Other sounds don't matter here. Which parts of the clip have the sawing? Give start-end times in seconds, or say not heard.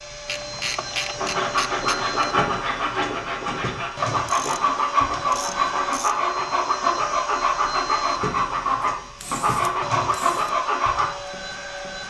1.1-11.1.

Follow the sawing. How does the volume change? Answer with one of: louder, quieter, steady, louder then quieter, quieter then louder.
steady.